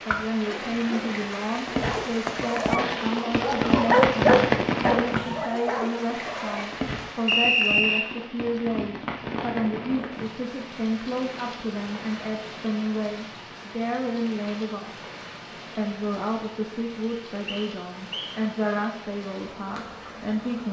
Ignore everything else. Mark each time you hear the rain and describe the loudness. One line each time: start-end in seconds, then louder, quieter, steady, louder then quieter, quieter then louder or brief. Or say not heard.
0.0-20.6 quieter.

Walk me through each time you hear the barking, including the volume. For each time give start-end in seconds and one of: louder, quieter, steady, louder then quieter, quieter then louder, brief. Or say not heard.
0.5-6.7 louder then quieter.